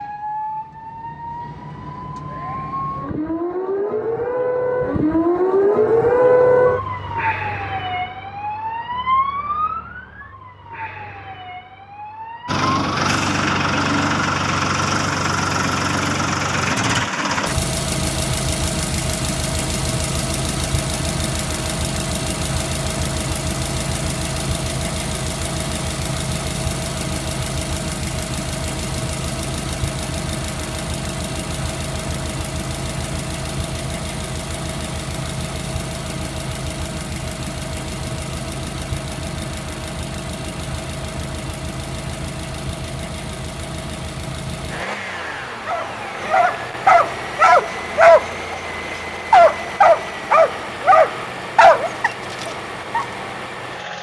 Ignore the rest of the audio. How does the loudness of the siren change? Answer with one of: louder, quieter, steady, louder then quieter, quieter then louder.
louder then quieter.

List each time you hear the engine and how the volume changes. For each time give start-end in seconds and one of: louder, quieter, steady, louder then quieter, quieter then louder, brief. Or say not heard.
12.4-53.9 quieter.